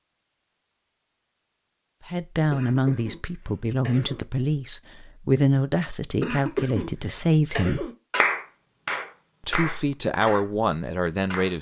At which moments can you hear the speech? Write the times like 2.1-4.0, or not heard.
2.0-7.9, 9.4-11.5.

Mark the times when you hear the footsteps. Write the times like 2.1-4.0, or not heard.
not heard.